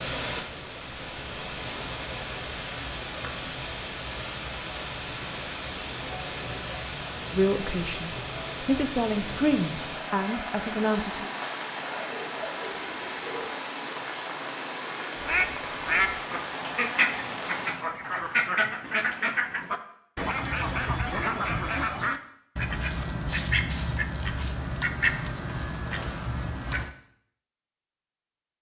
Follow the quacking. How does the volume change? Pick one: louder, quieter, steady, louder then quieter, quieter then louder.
steady.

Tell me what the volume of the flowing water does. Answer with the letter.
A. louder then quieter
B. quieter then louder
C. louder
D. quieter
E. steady
E.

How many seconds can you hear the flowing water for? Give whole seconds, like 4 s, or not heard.
18 s.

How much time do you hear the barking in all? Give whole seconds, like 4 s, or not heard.
2 s.